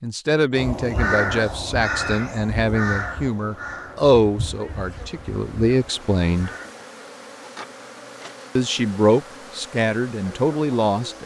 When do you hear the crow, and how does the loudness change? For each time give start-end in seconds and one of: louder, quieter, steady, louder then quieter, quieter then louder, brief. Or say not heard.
0.5-6.8 quieter.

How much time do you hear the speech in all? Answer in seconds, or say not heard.
9 s.